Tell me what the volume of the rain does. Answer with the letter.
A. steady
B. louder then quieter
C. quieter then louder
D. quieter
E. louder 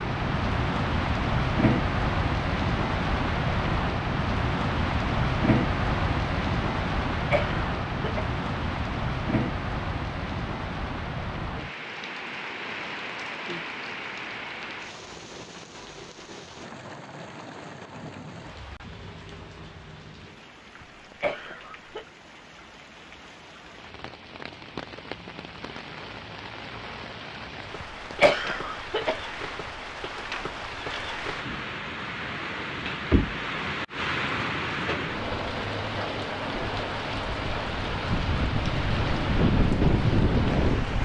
C.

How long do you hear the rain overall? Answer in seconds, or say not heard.
41 s.